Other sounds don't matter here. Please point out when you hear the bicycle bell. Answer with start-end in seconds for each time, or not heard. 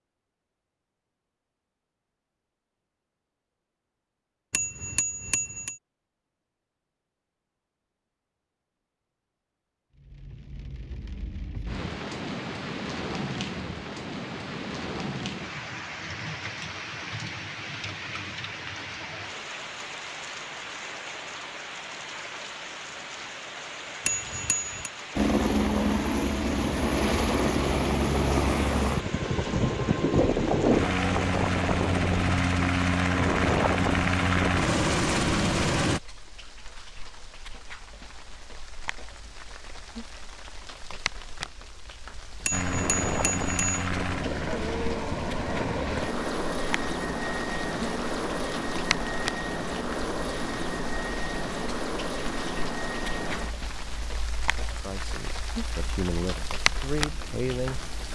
4.5-5.8, 24.1-24.9, 42.5-43.8.